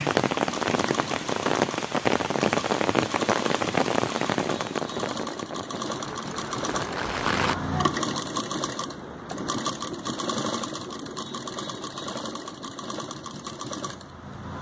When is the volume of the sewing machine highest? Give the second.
8 s.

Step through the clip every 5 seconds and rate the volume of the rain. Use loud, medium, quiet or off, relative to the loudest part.
loud, medium, off.